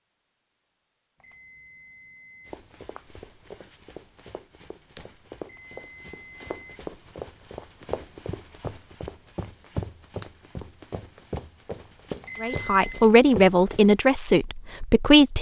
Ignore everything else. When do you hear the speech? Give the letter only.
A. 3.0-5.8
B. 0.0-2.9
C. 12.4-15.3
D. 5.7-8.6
C.